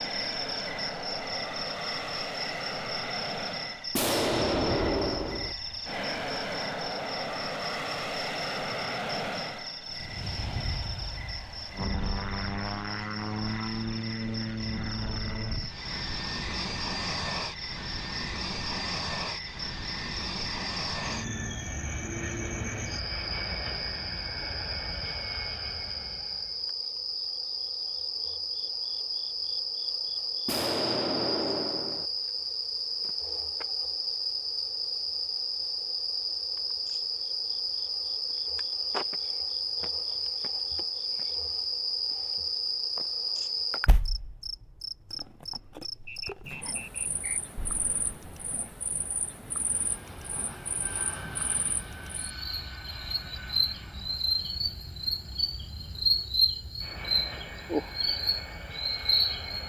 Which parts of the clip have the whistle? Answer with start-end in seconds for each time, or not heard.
46.0-47.4.